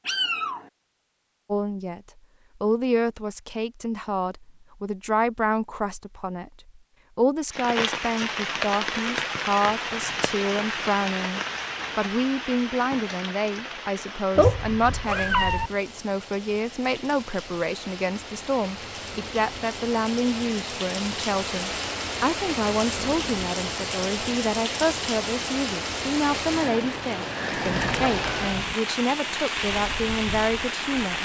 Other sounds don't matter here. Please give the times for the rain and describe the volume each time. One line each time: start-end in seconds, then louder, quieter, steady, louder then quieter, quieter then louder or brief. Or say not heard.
7.5-31.2 quieter then louder.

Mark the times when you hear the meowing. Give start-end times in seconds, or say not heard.
0.1-0.7, 14.3-15.7, 27.8-28.8.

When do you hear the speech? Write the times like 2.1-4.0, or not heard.
1.5-2.0, 2.6-31.2.